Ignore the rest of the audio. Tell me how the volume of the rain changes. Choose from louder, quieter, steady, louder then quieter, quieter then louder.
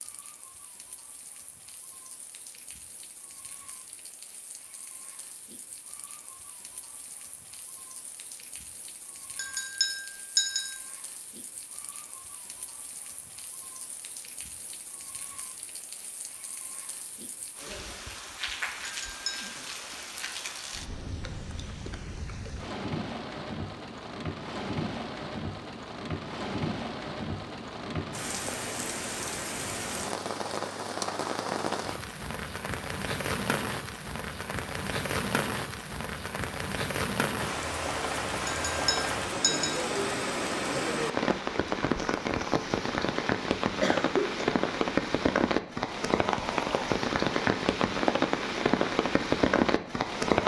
louder.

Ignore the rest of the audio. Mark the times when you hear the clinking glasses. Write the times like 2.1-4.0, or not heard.
9.3-10.7, 18.9-19.6, 38.5-39.8.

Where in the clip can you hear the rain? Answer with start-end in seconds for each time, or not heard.
0.0-50.4.